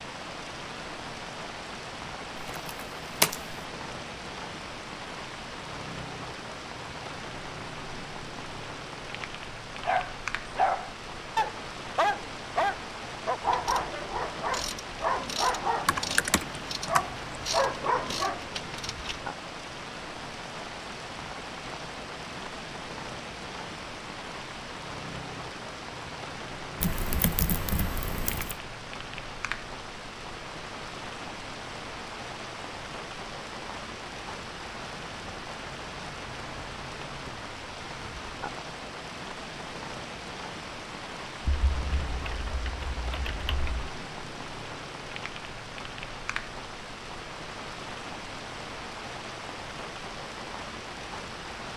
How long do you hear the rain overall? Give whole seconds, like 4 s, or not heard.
52 s.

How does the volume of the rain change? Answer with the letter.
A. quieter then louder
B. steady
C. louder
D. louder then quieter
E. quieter
B.